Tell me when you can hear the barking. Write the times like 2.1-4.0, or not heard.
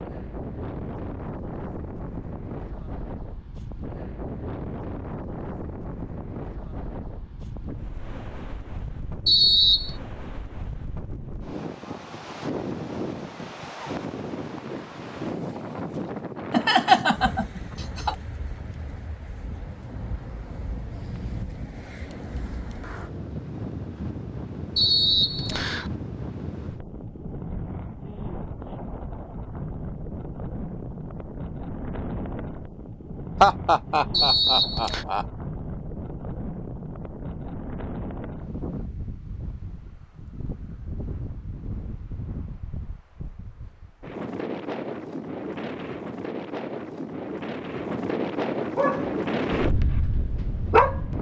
48.8-51.0.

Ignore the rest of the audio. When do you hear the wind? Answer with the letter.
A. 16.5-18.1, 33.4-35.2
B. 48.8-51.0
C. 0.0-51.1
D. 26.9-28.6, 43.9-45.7
C.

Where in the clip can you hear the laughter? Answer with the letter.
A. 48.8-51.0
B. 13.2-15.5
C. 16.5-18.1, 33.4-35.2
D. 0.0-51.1
C.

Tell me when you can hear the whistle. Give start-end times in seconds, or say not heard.
9.2-9.9, 24.8-25.9, 34.1-35.0.